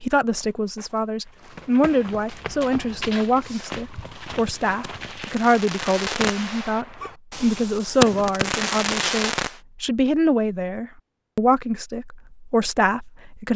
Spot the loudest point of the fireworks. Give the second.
8 s.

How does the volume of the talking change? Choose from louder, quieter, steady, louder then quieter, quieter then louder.
steady.